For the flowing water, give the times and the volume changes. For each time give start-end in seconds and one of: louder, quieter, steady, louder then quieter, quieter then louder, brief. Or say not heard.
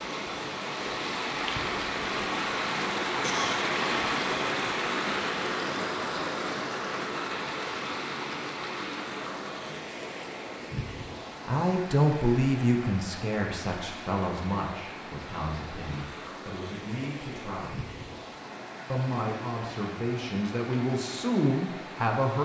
0.0-22.4 quieter.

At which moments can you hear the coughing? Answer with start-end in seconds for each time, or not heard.
3.2-3.7.